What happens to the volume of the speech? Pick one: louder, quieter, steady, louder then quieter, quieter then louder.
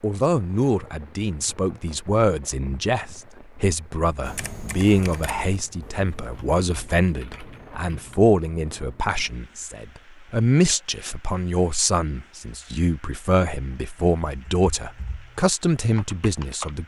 steady.